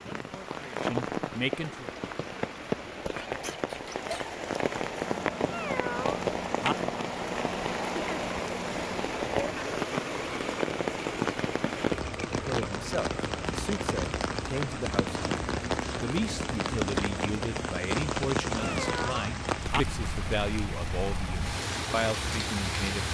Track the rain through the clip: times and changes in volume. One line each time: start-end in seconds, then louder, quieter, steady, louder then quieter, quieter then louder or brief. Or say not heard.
0.0-23.0 steady.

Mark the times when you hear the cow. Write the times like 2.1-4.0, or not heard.
not heard.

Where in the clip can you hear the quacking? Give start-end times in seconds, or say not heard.
not heard.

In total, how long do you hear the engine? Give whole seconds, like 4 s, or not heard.
18 s.